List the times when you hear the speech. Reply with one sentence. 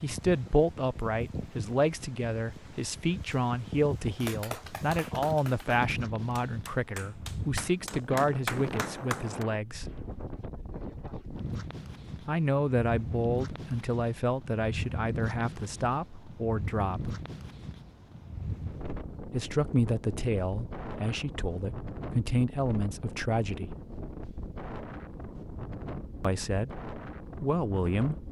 You can hear the speech from 0.0 to 9.8 s, from 12.2 to 17.1 s, from 19.3 to 23.7 s and from 26.2 to 28.2 s.